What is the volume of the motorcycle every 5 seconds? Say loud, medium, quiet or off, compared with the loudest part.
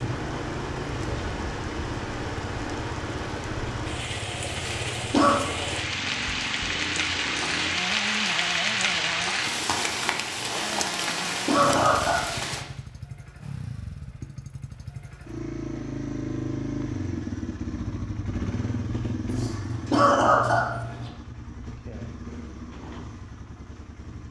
medium, medium, medium, loud, medium.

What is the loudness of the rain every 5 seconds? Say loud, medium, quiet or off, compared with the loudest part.
medium, loud, loud, off, off.